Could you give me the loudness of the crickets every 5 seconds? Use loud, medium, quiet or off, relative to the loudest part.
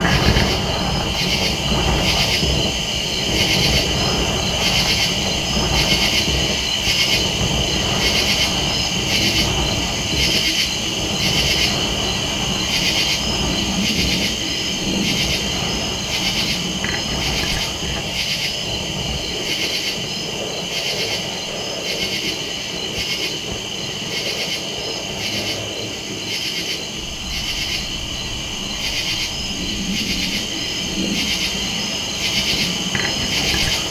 loud, loud, loud, loud, medium, medium, loud.